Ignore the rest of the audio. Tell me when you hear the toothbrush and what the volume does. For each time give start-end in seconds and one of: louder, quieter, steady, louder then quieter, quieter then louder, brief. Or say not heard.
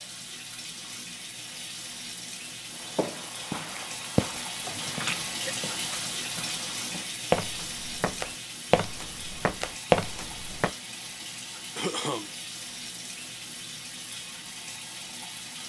not heard.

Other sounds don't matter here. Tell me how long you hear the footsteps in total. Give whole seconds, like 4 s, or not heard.
8 s.